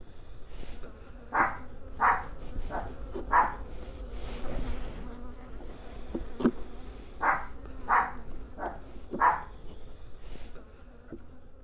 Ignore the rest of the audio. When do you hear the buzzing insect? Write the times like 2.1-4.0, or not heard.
0.0-11.5.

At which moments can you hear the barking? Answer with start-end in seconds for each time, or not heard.
1.3-3.6, 7.2-9.4.